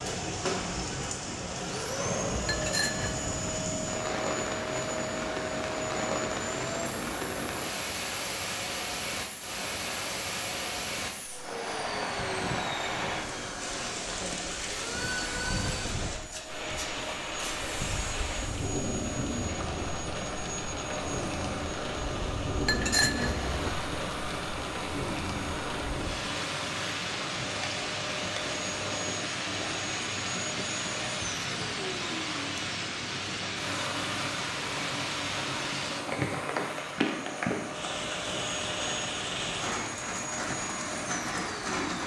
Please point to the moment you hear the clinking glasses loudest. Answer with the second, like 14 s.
23 s.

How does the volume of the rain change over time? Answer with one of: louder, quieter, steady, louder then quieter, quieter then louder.
steady.